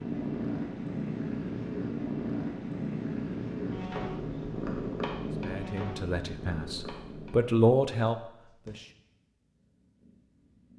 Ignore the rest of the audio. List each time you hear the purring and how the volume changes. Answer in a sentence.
The purring can be heard from 0.0 to 10.7 s, getting quieter.